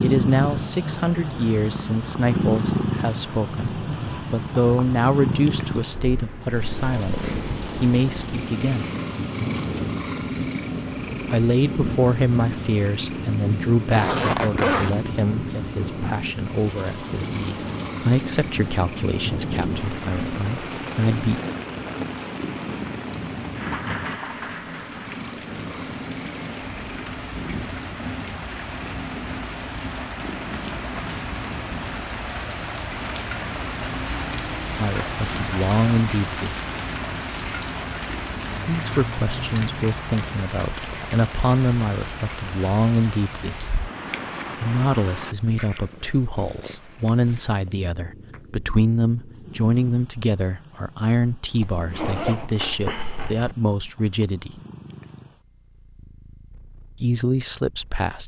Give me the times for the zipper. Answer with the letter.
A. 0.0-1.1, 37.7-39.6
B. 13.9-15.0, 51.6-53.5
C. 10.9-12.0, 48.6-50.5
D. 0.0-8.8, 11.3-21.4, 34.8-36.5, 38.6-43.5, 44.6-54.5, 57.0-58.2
B.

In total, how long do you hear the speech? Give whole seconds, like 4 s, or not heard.
37 s.